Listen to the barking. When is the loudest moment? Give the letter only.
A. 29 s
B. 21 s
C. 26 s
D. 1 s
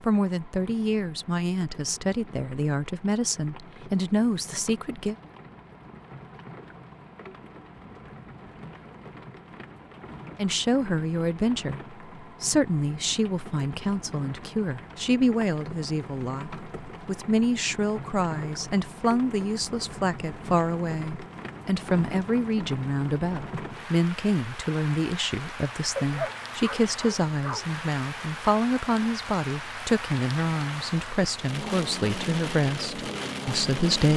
C.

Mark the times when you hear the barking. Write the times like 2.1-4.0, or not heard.
25.9-27.6.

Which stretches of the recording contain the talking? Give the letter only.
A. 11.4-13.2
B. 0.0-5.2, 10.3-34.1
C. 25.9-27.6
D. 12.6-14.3
B.